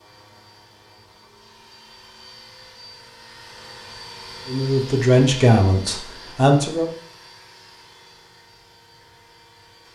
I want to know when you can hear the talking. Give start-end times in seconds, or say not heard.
4.5-6.9.